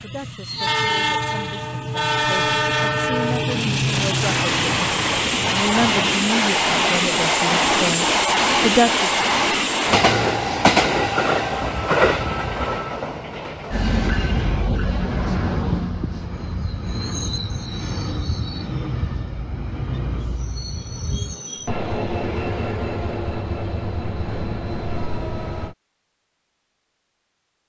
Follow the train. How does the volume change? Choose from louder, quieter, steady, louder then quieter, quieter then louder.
quieter.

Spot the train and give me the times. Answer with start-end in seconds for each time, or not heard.
0.0-25.8.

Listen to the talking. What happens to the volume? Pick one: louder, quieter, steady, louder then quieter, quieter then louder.
louder.